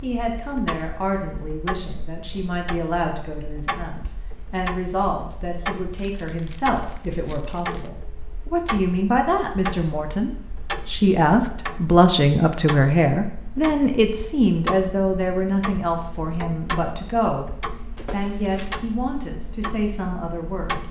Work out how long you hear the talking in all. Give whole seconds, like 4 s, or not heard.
20 s.